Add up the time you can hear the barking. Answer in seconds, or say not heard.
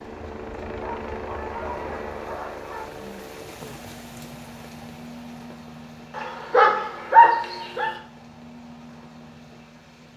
4 s.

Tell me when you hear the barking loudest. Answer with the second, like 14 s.
7 s.